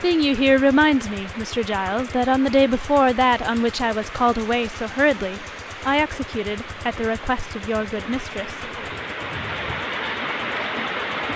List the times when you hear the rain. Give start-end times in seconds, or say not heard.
0.0-11.3.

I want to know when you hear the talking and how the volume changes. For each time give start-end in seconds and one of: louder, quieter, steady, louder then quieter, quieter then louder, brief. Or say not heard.
0.0-8.6 quieter.